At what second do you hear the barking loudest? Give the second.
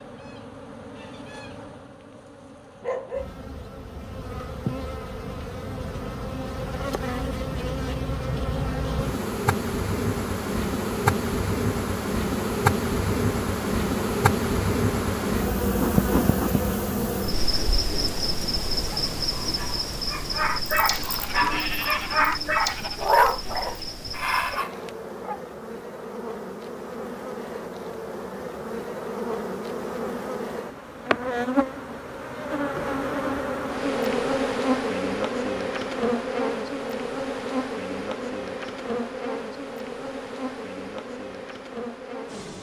23 s.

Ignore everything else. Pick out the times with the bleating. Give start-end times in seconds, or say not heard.
20.9-23.2.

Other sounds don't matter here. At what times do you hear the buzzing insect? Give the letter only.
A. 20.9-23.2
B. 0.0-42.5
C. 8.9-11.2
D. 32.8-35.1
B.